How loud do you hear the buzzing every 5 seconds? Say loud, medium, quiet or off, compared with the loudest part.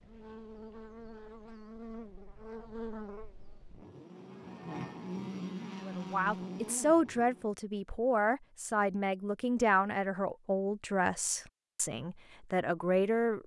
medium, loud, off.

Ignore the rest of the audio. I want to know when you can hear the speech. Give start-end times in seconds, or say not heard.
5.8-13.4.